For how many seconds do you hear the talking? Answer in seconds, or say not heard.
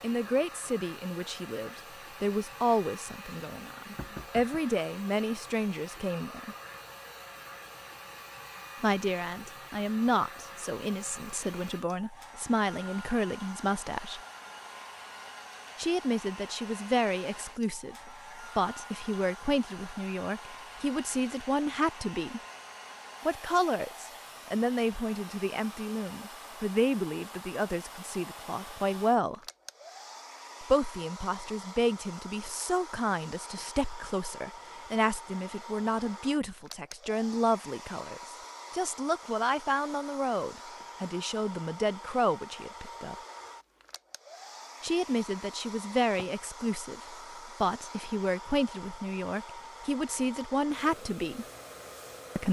44 s.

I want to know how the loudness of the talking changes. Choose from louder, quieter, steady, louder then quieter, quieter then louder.
steady.